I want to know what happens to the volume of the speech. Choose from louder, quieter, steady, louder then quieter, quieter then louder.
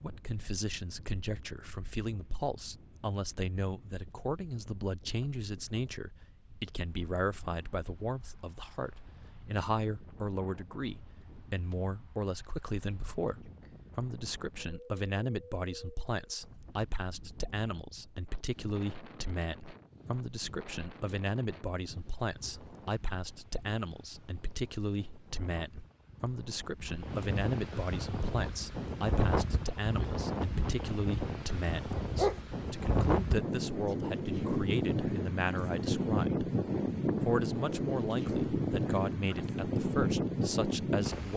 steady.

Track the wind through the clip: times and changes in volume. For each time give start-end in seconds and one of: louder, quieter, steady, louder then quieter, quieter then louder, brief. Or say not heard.
0.0-41.3 louder.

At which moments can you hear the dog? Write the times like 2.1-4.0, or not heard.
31.8-32.4.